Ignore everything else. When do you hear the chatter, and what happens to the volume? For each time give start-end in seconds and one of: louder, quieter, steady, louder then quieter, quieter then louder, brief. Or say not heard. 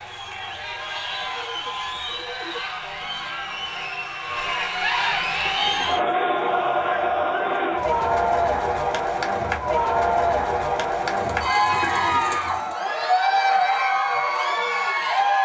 0.0-15.4 louder.